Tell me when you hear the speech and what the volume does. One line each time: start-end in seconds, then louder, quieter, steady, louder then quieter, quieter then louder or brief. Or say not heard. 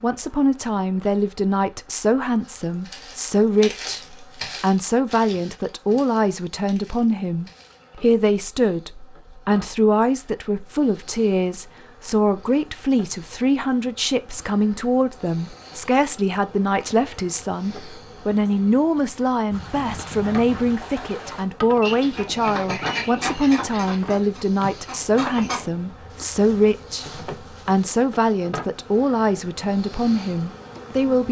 0.0-31.2 steady.